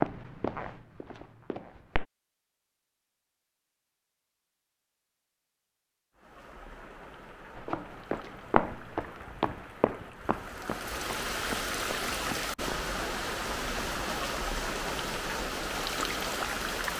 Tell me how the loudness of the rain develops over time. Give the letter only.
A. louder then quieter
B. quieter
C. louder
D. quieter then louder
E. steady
C.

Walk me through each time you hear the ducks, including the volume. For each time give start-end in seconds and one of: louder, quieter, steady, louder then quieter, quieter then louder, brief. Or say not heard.
not heard.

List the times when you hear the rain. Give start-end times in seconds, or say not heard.
6.2-16.9.